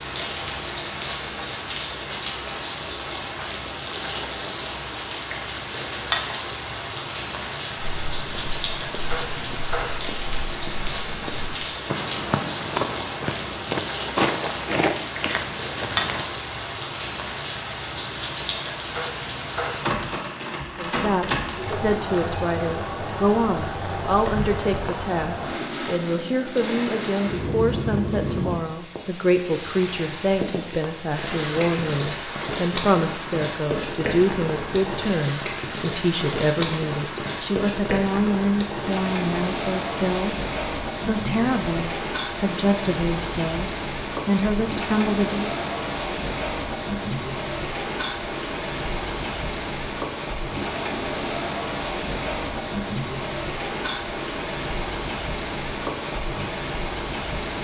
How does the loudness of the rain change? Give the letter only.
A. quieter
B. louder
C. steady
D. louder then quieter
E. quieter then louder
C.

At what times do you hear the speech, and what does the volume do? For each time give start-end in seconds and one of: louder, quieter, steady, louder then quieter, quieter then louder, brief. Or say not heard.
20.8-45.5 steady.